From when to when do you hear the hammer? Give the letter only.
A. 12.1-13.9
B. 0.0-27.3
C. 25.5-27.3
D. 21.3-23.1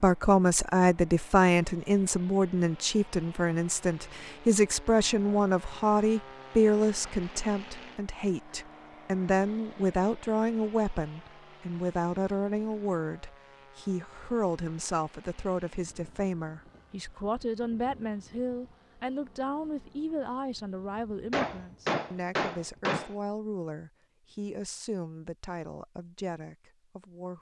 D.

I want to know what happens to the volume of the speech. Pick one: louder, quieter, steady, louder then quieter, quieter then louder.
quieter.